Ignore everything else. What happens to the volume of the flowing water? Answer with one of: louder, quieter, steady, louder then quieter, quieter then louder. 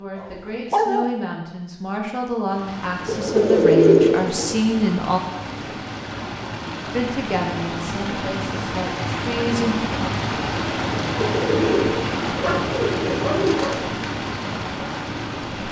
louder.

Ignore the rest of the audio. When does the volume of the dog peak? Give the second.
1 s.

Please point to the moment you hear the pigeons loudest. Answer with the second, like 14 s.
4 s.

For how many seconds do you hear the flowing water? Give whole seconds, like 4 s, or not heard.
13 s.